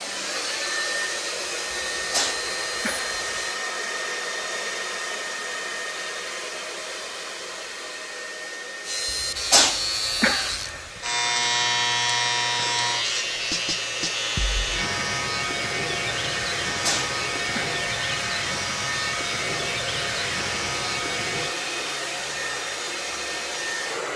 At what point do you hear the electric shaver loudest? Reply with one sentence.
The loudest moment of the electric shaver is at 12 seconds.